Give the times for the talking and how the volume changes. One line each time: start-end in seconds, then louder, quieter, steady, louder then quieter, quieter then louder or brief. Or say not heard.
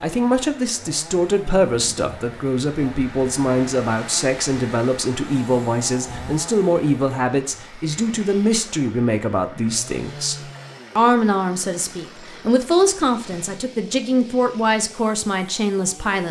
0.0-16.2 steady.